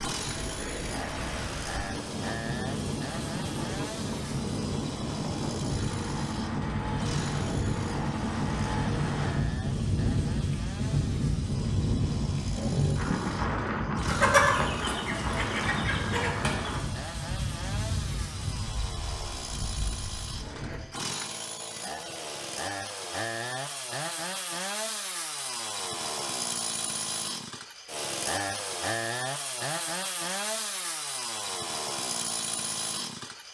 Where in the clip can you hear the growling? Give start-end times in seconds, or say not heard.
12.4-13.4.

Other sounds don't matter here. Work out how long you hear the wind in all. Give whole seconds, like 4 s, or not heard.
21 s.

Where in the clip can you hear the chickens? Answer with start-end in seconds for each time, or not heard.
14.1-16.7.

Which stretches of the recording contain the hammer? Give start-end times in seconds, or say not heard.
not heard.